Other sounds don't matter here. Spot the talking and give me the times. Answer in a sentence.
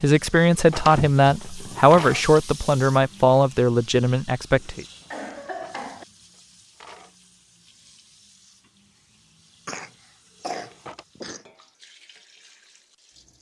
You can hear the talking from 0.0 to 4.8 s.